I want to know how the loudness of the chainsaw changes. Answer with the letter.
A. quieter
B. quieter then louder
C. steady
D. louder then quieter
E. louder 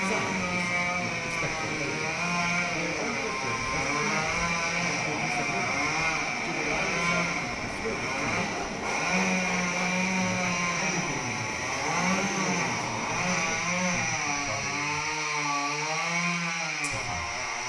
C.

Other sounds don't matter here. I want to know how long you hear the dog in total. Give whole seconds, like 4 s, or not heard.
2 s.